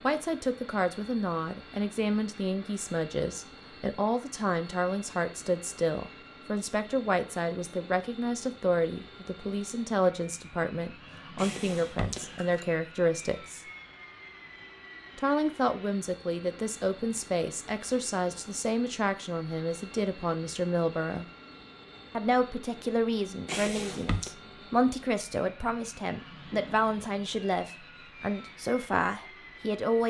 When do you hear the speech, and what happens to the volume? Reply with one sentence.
You can hear the speech from 0.0 to 13.7 s, at a steady volume; from 15.2 to 21.2 s, at a steady volume; and from 22.1 to 30.0 s, at a steady volume.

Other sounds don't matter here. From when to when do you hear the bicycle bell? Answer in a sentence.
You can hear the bicycle bell from 11.3 to 12.7 s and from 23.4 to 24.4 s.